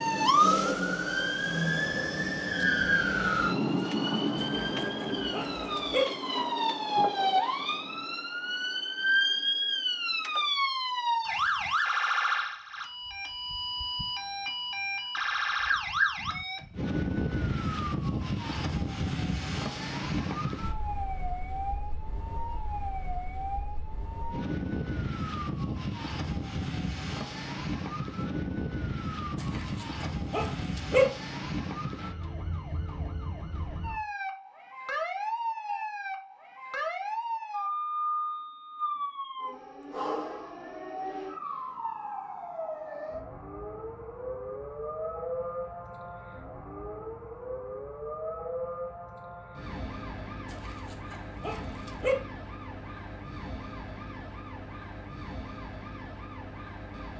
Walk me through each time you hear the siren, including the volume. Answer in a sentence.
The siren can be heard from 0.0 to 57.1 s, getting quieter.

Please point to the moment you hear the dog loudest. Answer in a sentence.
The loudest moment of the dog is at 31 seconds.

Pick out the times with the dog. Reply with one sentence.
The dog can be heard from 4.3 to 6.0 s, from 29.4 to 31.1 s and from 50.5 to 52.1 s.